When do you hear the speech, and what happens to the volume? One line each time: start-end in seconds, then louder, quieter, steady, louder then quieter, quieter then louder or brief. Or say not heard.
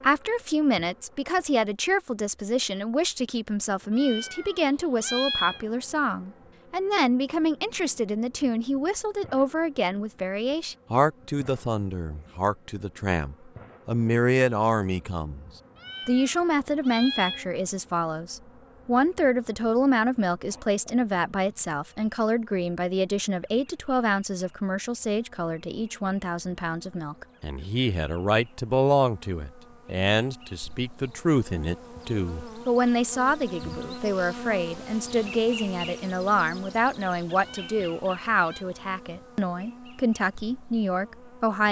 0.0-41.6 steady.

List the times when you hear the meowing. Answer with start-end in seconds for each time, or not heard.
3.9-5.6, 15.8-17.4, 37.4-38.6.